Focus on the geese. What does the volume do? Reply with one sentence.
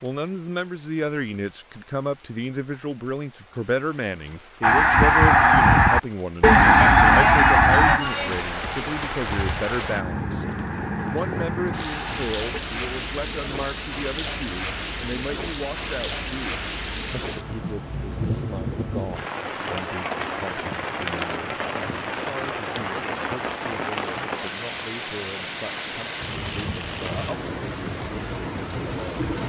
The volume of the geese goes down.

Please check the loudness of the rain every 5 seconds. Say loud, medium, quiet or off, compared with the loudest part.
quiet, loud, loud, loud, loud, loud.